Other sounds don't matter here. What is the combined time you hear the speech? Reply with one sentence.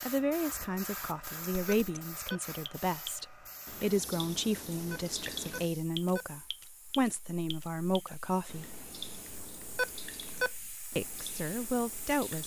You can hear the speech for 10 seconds altogether.